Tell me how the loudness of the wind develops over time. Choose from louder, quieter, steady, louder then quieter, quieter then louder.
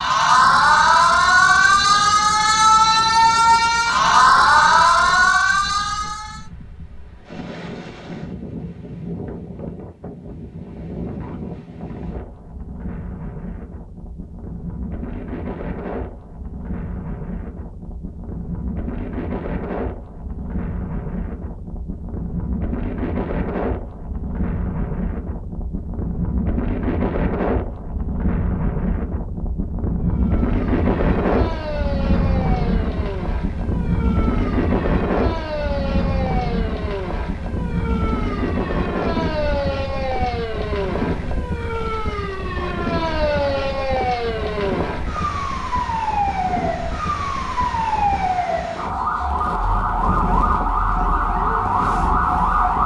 louder then quieter.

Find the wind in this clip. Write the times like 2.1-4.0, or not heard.
0.0-52.8.